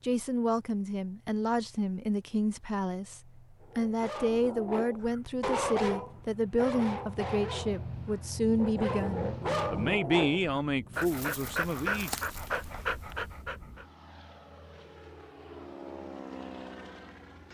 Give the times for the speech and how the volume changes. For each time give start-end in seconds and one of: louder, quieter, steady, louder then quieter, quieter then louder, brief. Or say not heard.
0.0-12.2 steady.